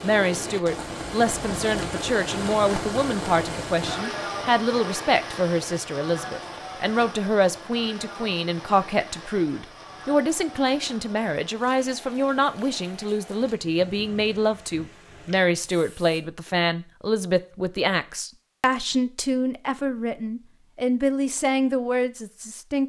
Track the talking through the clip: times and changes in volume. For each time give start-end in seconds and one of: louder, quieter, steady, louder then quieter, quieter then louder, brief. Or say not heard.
0.0-22.8 steady.